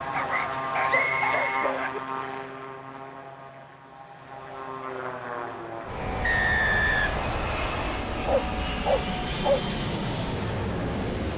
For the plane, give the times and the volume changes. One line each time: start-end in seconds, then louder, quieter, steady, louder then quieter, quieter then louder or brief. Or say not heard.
0.0-11.3 quieter then louder.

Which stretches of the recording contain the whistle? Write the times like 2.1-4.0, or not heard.
0.8-2.5, 6.2-8.0.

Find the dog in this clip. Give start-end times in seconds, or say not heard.
0.1-2.0, 8.2-9.6.